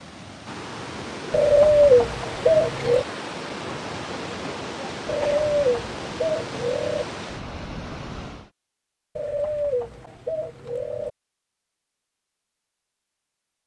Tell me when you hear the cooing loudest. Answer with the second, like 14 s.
2 s.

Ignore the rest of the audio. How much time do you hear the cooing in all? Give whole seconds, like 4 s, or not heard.
6 s.